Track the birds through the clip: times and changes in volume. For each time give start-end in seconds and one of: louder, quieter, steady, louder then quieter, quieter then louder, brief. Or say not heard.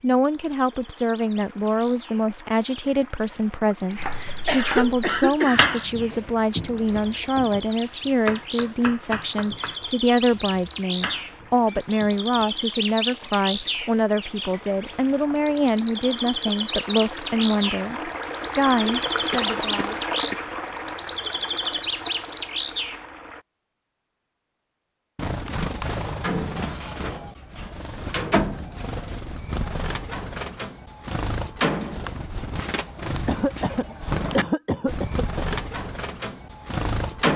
0.0-37.3 louder.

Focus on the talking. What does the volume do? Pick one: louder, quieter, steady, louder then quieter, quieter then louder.
steady.